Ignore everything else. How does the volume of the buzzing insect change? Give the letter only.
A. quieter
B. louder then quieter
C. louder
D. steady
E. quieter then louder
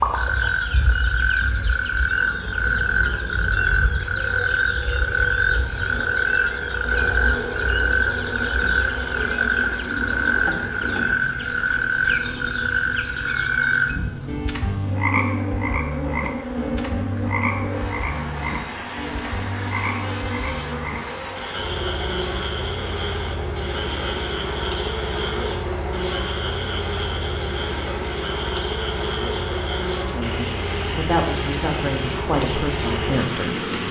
C.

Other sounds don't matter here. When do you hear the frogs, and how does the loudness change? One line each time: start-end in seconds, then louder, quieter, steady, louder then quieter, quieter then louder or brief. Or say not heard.
0.0-33.8 quieter.